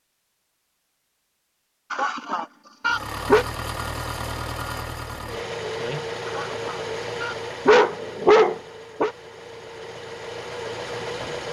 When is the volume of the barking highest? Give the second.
8 s.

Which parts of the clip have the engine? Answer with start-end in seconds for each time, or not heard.
2.9-11.4.